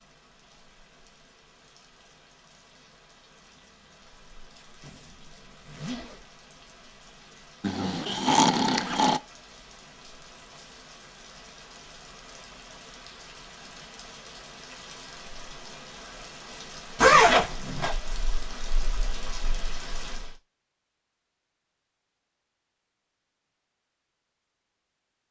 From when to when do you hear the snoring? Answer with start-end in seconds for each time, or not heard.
7.6-9.2.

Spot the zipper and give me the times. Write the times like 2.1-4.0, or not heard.
4.8-6.4, 8.8-9.2, 16.9-17.9.